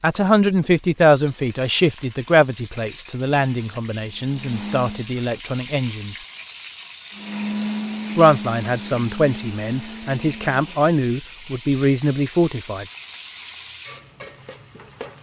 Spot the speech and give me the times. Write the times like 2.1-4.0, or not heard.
0.0-6.2, 8.2-12.8.